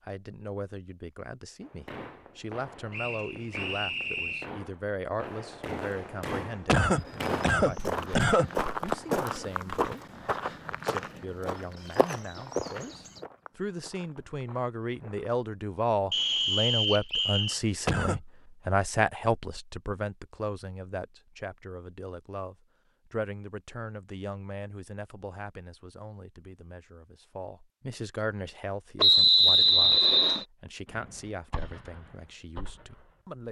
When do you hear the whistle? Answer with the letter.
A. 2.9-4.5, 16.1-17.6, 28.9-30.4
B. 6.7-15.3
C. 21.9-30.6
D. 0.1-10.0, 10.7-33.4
A.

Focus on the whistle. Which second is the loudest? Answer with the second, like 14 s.
29 s.